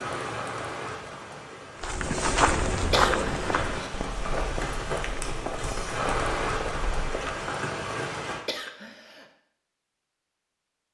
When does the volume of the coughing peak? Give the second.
3 s.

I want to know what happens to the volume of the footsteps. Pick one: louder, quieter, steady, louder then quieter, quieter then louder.
quieter.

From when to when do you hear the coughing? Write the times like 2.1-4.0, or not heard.
2.9-3.5, 8.4-9.2.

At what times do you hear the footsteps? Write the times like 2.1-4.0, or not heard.
1.8-7.5.